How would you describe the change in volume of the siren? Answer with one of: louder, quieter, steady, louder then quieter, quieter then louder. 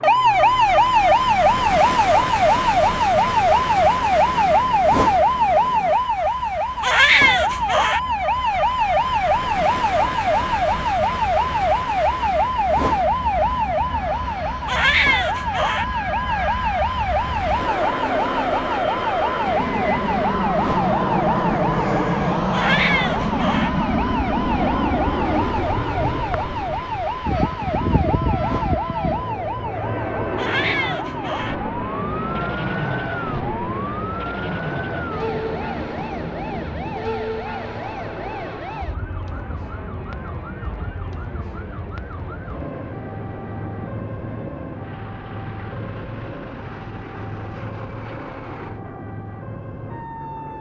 quieter.